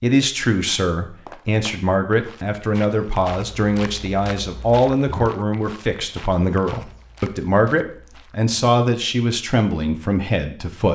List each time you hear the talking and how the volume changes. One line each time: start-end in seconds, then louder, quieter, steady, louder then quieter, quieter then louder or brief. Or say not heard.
0.0-10.9 steady.